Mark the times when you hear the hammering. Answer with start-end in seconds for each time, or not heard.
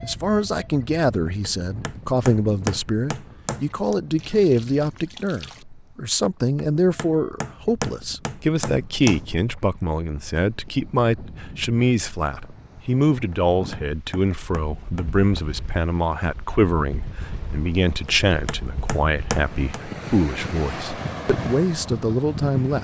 1.4-4.0, 6.5-9.3, 13.3-15.4, 18.1-19.8.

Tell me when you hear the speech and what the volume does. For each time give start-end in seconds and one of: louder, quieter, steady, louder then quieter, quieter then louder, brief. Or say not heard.
0.0-22.7 steady.